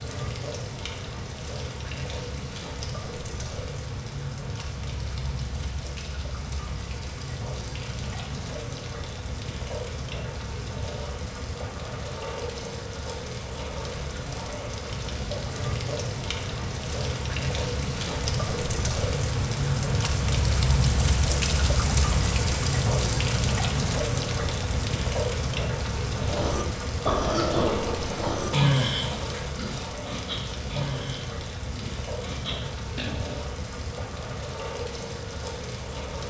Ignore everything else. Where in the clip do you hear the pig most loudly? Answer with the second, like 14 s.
29 s.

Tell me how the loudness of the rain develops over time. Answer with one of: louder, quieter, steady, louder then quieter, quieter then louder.
louder then quieter.